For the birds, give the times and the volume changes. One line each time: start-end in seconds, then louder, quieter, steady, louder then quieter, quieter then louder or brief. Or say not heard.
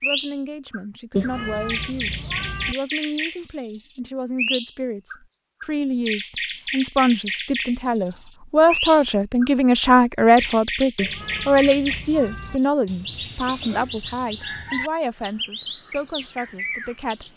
0.0-17.3 steady.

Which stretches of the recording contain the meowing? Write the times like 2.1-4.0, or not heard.
1.1-2.8, 10.9-12.6.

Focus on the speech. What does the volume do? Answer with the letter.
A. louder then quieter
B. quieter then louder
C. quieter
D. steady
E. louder
A.